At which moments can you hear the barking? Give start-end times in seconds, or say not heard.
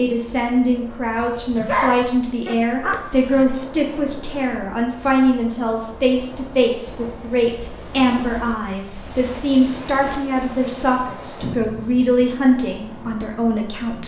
1.6-3.5.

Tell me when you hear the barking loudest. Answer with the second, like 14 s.
2 s.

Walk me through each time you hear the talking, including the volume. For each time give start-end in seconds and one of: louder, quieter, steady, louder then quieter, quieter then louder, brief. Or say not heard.
0.0-14.0 steady.